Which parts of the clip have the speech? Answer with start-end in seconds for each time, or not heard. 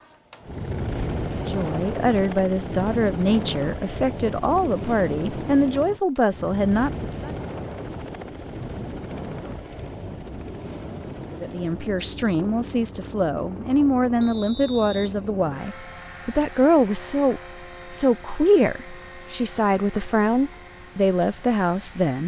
1.4-7.3, 11.3-22.2.